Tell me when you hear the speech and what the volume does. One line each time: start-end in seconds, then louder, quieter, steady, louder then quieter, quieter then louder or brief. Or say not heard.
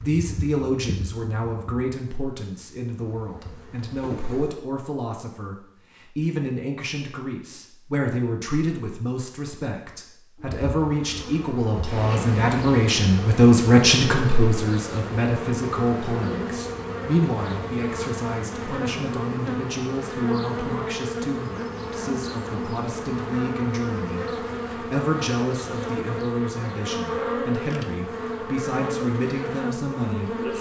0.0-30.5 louder then quieter.